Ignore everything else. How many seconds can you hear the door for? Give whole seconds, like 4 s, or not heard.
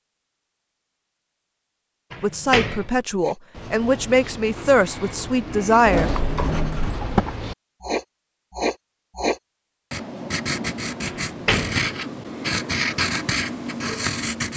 3 s.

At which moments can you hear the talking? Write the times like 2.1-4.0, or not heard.
2.2-6.1.